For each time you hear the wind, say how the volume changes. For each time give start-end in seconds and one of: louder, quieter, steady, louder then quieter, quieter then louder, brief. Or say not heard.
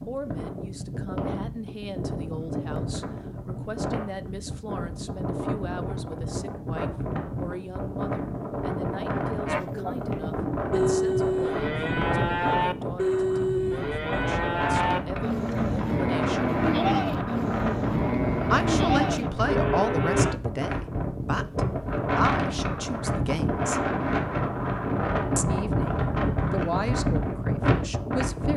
0.0-28.5 louder.